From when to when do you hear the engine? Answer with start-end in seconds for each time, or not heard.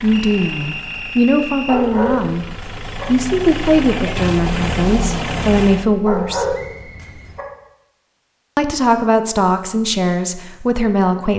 0.0-5.9.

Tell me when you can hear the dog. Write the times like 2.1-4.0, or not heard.
1.6-3.0, 6.0-7.5.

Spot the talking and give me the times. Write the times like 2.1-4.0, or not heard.
0.0-2.5, 3.0-6.5, 8.6-11.3.